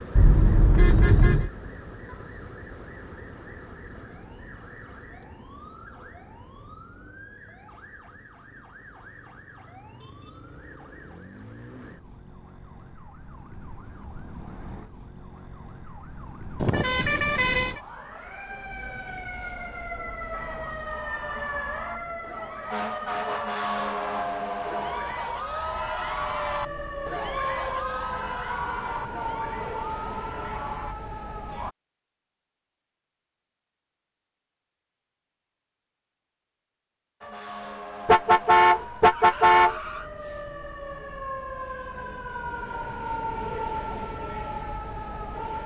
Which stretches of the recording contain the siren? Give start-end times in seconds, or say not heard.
0.0-31.8, 37.2-45.6.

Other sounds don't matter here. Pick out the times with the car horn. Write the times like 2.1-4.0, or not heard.
0.1-1.5, 16.6-17.8, 38.0-40.0.